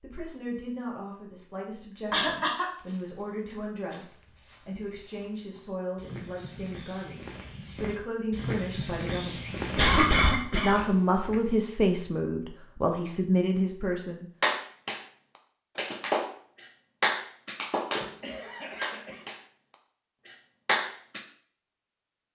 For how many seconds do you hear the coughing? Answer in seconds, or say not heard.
3 s.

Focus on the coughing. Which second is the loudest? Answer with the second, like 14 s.
10 s.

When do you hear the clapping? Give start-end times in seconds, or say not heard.
14.4-15.0, 15.8-18.1, 18.8-19.4, 20.2-21.2.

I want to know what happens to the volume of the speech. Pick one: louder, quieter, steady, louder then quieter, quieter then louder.
louder.